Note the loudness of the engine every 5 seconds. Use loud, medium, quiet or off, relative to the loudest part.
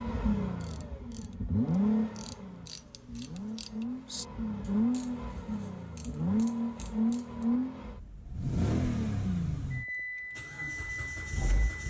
loud, loud, medium.